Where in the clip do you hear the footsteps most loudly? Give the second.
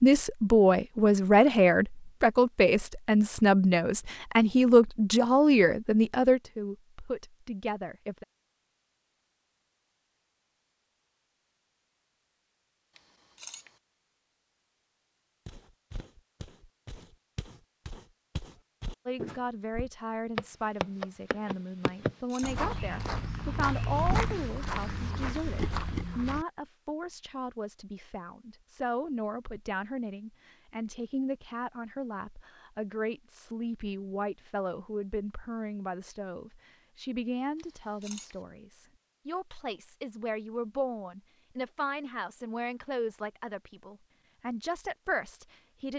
24 s.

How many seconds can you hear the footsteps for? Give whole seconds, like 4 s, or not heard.
11 s.